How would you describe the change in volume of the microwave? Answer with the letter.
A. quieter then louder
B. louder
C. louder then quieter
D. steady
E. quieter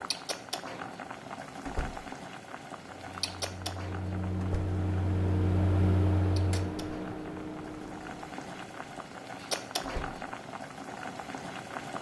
C.